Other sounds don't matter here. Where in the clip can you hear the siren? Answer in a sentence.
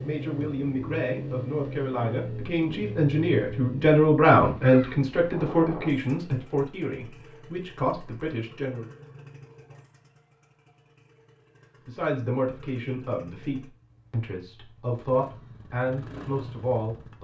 The siren can't be heard in this clip.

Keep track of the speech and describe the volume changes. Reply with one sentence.
The volume of the speech goes up, then down.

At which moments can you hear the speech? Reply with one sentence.
The speech can be heard from 0.0 to 8.9 s and from 11.8 to 17.1 s.